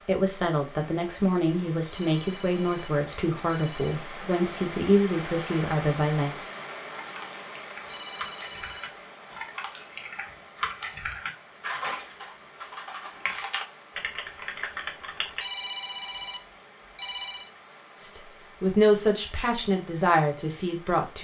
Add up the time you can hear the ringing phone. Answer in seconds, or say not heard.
5 s.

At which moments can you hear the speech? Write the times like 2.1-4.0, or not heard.
0.1-6.3, 18.0-21.2.